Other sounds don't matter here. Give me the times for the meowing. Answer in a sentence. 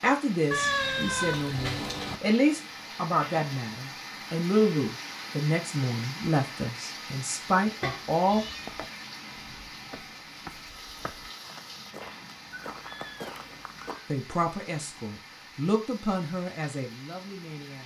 The meowing can be heard from 0.5 to 2.2 s, from 7.8 to 8.8 s and from 12.6 to 14.1 s.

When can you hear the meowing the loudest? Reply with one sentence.
The volume of the meowing peaks at 1 second.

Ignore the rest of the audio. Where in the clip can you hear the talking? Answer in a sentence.
The talking can be heard from 0.0 to 8.4 s and from 14.1 to 17.8 s.